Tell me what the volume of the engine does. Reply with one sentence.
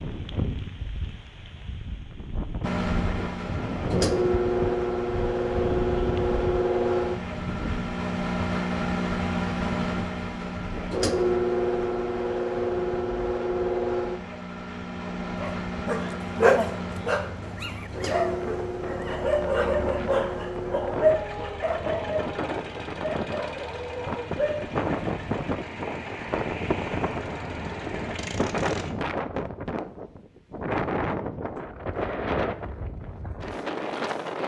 The volume of the engine goes down.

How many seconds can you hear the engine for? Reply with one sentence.
The engine can be heard for 26 seconds in total.